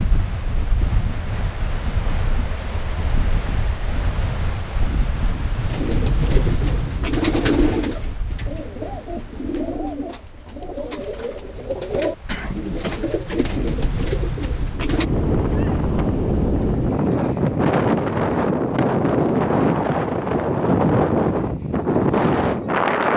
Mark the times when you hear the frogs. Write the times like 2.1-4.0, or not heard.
not heard.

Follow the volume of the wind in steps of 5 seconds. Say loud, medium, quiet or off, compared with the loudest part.
medium, medium, quiet, loud, loud.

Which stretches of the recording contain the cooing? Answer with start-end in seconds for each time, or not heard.
5.7-15.1.